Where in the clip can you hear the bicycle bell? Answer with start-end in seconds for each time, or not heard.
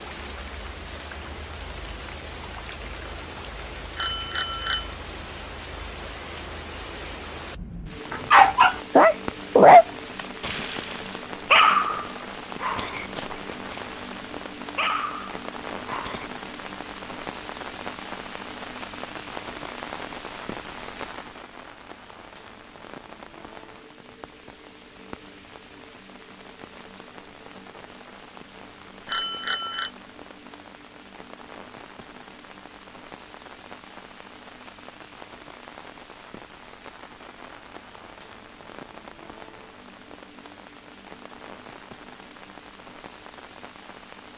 4.0-5.0, 29.1-29.9.